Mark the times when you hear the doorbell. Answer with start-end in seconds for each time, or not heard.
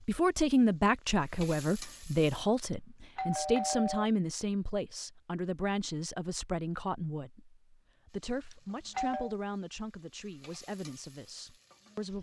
2.7-4.1, 8.5-9.3.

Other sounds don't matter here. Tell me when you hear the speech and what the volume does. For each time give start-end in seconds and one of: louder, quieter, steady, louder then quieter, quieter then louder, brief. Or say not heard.
0.1-12.1 quieter.